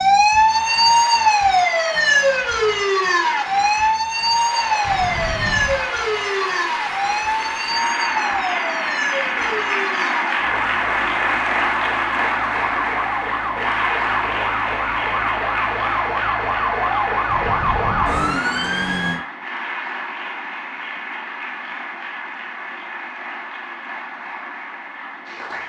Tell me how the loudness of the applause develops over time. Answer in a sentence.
The volume of the applause goes up, then down.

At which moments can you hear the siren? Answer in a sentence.
The siren can be heard from 0.0 to 19.2 s.